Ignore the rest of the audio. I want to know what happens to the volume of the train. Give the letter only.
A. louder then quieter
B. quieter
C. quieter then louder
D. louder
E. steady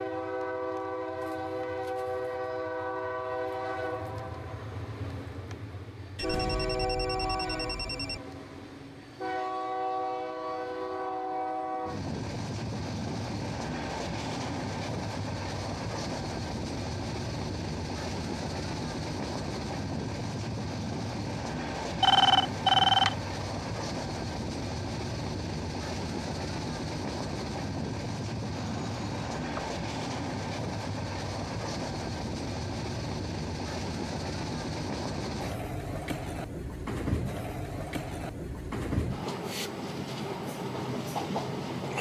E.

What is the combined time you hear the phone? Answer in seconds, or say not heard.
4 s.